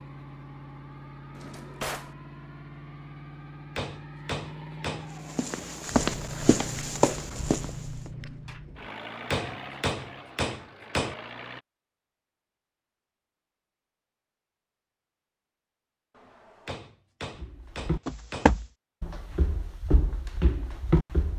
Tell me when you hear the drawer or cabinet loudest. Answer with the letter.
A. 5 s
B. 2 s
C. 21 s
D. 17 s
B.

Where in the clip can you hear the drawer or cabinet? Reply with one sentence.
The drawer or cabinet can be heard from 1.3 to 2.1 s and from 16.1 to 16.8 s.